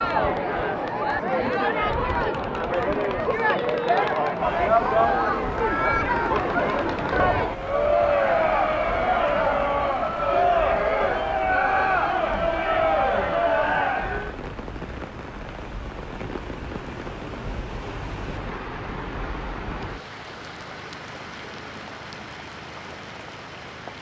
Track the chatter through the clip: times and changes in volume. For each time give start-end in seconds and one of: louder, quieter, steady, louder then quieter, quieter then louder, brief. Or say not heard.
0.0-14.3 steady.